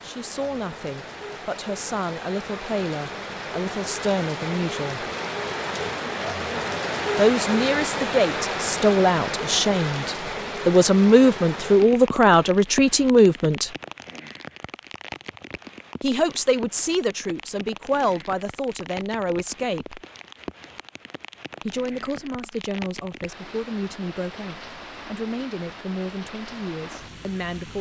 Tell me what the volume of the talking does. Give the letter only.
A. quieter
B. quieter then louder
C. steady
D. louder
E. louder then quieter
E.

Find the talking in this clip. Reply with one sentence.
The talking can be heard from 0.0 to 5.0 s, from 7.2 to 13.7 s, from 16.0 to 20.0 s and from 21.6 to 27.7 s.